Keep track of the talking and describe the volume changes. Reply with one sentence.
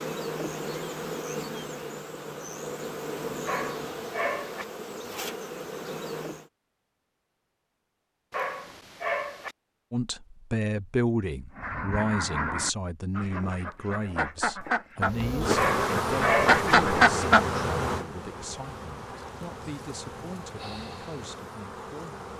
The loudness of the talking goes down.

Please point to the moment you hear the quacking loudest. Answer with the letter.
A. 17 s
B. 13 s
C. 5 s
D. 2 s
A.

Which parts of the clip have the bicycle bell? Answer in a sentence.
The bicycle bell can't be heard in this clip.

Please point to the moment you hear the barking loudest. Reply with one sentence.
The volume of the barking peaks at 16 seconds.